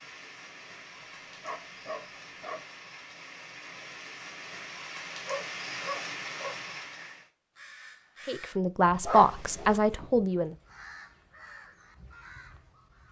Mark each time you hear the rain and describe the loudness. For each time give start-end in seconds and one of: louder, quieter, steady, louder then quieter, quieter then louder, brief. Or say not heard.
0.0-7.3 louder.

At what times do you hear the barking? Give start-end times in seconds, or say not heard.
1.0-2.6, 5.2-6.6, 9.0-9.8.